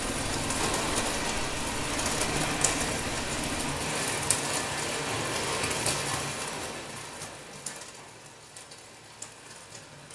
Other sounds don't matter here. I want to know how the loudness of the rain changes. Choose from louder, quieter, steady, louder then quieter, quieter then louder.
quieter.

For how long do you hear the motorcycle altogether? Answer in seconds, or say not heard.
4 s.